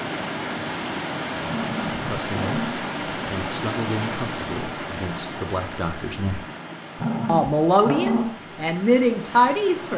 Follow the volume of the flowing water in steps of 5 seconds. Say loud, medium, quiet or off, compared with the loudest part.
loud, medium.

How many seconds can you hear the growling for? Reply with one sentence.
The growling can be heard for 3 seconds in total.